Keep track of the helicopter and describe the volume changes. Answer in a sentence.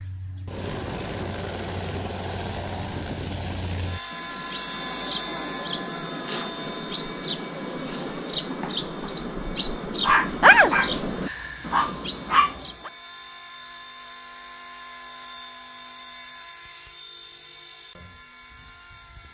The loudness of the helicopter goes down.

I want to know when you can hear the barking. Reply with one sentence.
You can hear the barking from 10.0 to 12.9 s.